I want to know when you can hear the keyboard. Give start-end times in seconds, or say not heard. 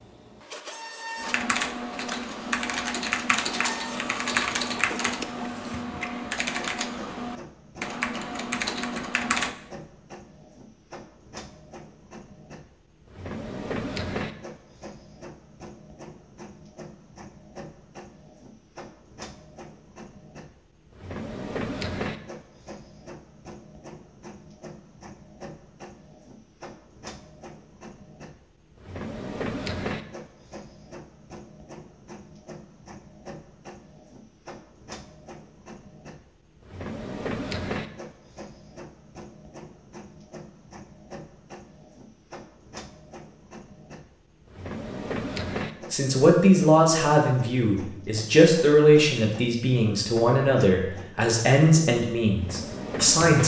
1.1-9.6.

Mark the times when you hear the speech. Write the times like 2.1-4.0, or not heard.
45.9-53.4.